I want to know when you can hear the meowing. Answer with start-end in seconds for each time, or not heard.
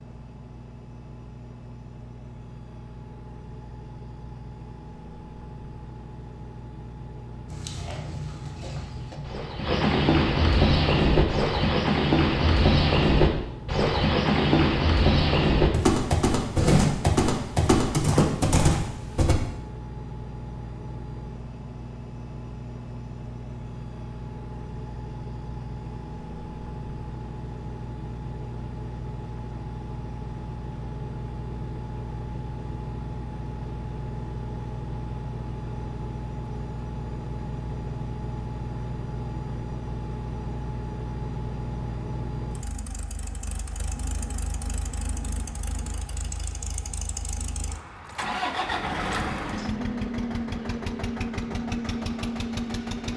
not heard.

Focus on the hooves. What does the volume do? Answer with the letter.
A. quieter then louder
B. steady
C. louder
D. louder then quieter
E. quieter
C.